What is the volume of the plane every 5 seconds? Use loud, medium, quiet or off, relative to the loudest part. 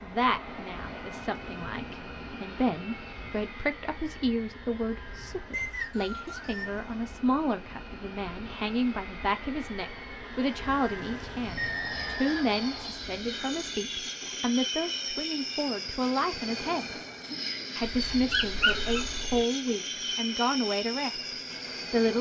medium, medium, loud, loud, loud.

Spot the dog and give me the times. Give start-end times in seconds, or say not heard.
17.8-19.4.